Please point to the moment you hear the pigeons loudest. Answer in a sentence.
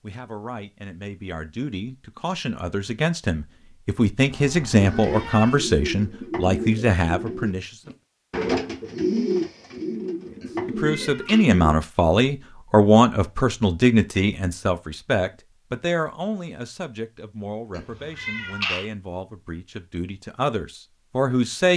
The loudest moment of the pigeons is at 9 seconds.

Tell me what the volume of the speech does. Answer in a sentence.
The loudness of the speech goes up, then down.